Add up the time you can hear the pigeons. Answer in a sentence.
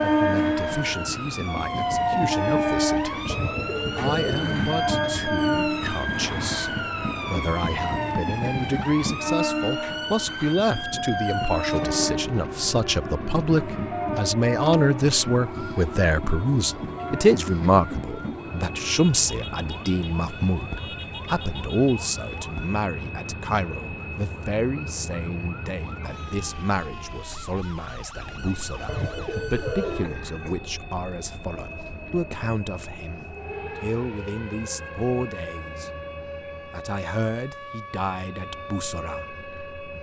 You can hear the pigeons for 4 seconds altogether.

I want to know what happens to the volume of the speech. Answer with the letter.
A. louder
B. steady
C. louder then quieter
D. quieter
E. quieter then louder
C.